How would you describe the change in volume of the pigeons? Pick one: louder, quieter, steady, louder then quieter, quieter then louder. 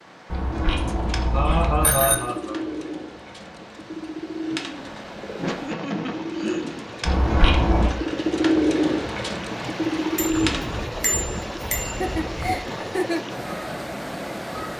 louder.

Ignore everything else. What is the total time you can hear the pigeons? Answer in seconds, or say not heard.
10 s.